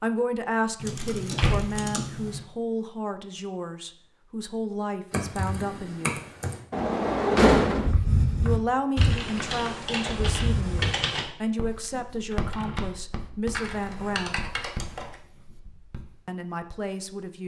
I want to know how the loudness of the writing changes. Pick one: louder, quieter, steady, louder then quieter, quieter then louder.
quieter.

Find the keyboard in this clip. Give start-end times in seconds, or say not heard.
0.8-2.4, 5.1-6.6, 8.9-11.3, 13.5-15.2.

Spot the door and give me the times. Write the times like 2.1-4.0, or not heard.
1.4-1.9, 6.7-8.0, 12.3-12.9.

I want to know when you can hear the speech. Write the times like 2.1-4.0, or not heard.
0.0-6.2, 8.4-14.4, 16.2-17.4.